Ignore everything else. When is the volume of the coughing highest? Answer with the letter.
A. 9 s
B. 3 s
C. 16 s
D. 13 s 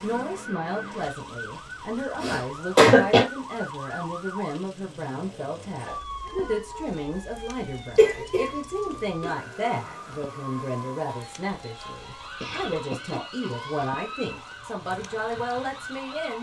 B.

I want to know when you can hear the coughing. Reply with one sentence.
You can hear the coughing from 2.2 to 3.2 s, from 8.0 to 9.0 s and from 12.4 to 13.9 s.